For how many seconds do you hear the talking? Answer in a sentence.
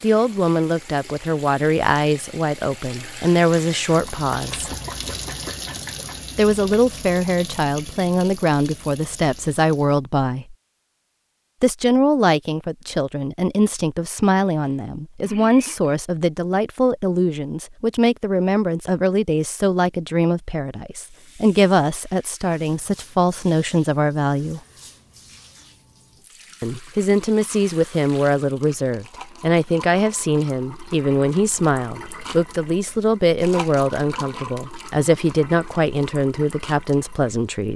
The talking can be heard for 33 seconds in total.